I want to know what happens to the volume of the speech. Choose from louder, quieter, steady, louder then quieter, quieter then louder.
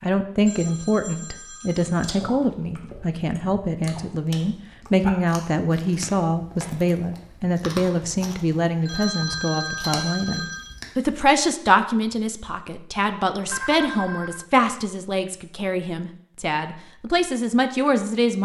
steady.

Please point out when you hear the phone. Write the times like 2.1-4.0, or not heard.
0.5-2.1, 8.8-10.8, 13.4-14.4.